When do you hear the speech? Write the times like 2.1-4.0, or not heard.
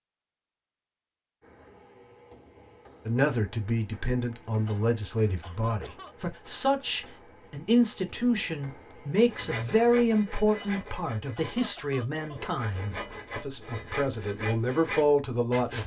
3.0-15.8.